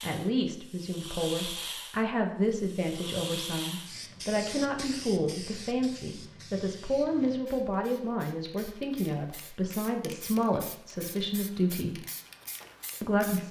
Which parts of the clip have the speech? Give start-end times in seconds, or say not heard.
0.0-11.9, 13.0-13.4.